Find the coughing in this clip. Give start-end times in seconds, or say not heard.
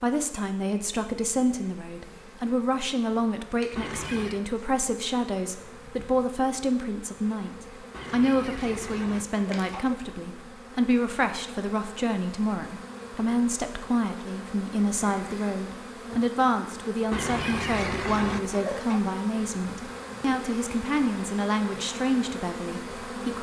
3.8-4.4, 7.9-10.0, 17.1-19.0.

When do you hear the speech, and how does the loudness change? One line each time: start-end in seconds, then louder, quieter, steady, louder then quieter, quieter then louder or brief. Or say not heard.
0.0-23.3 steady.